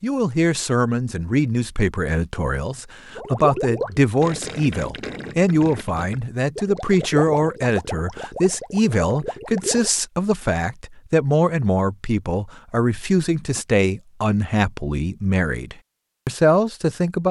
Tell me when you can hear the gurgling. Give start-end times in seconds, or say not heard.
3.1-9.9.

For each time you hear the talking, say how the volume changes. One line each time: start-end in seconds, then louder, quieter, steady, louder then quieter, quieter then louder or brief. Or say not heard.
0.0-17.2 steady.